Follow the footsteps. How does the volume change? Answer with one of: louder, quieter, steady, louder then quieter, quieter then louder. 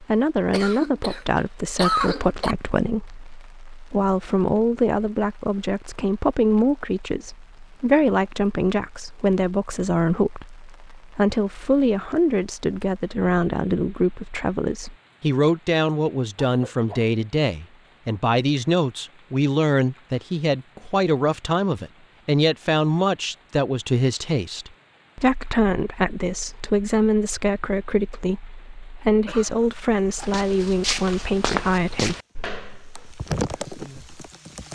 quieter.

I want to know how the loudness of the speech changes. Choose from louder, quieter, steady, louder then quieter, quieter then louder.
steady.